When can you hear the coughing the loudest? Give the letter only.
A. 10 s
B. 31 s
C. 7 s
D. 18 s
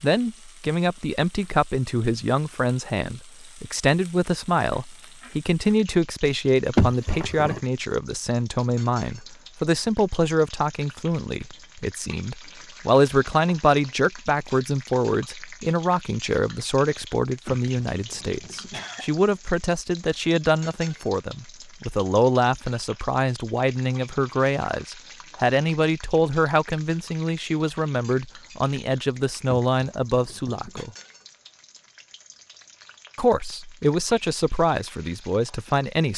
C.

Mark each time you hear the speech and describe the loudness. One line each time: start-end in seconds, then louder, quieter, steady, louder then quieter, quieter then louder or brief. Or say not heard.
0.0-30.9 steady
33.1-36.1 brief.